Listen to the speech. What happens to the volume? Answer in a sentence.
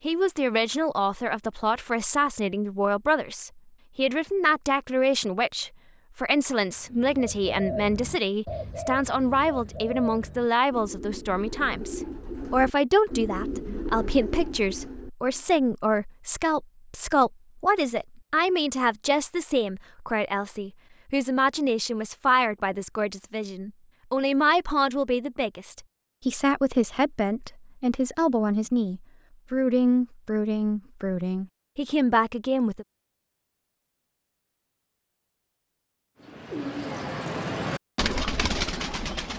The loudness of the speech stays about the same.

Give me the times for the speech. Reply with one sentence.
The speech can be heard from 0.0 to 32.9 s.